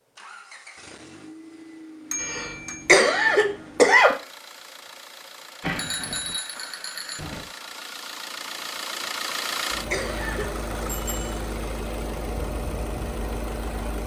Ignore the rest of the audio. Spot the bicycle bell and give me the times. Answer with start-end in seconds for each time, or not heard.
2.1-2.9, 5.6-7.5, 10.8-11.4.